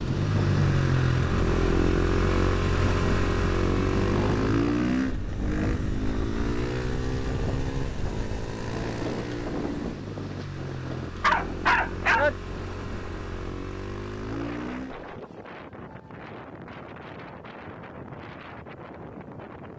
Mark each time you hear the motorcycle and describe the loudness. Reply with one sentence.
The motorcycle can be heard from 0.0 to 15.1 s, getting quieter.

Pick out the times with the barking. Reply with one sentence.
The barking can be heard from 11.2 to 12.3 s.